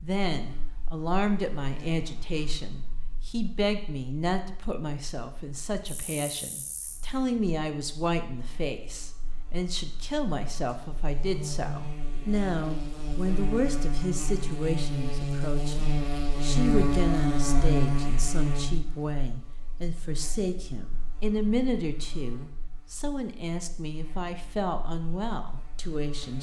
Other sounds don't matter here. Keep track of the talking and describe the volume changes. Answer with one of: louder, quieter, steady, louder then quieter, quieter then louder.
steady.